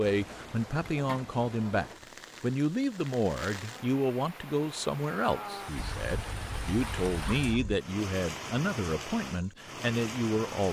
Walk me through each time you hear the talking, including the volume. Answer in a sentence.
The talking can be heard from 0.0 to 10.6 s, at a steady volume.